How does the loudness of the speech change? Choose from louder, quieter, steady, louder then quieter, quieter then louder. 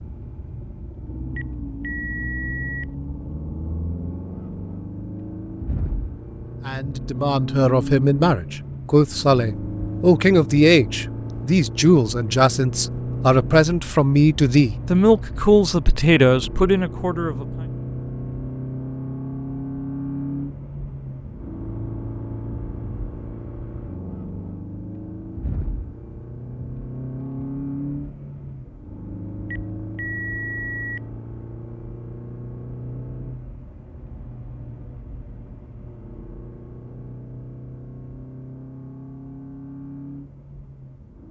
steady.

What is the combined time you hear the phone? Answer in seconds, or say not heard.
3 s.